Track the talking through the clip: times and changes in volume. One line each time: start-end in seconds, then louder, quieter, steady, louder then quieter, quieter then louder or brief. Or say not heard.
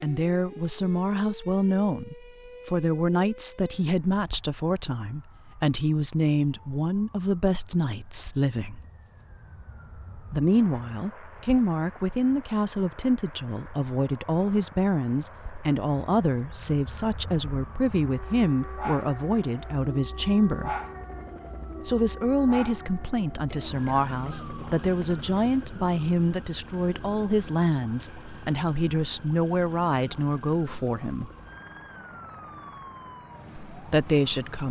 0.0-8.8 steady
10.3-20.8 steady
21.9-31.3 steady
33.7-34.6 brief.